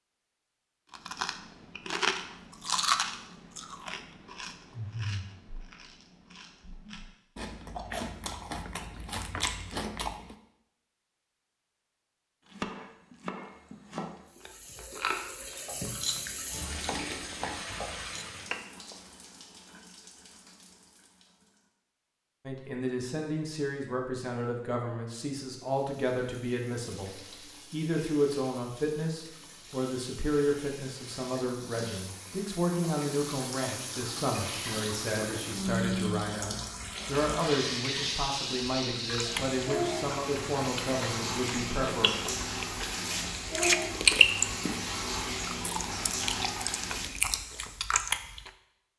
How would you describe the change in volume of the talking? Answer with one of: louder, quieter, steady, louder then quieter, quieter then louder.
steady.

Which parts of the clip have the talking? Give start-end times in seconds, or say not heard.
22.4-42.1.